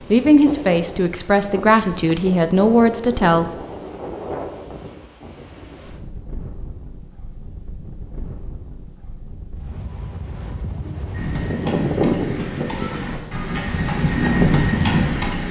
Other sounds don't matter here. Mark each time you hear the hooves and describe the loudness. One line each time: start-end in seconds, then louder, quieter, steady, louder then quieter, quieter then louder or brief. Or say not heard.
11.1-15.4 louder.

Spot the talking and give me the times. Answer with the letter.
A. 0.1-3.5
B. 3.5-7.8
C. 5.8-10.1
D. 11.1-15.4
A.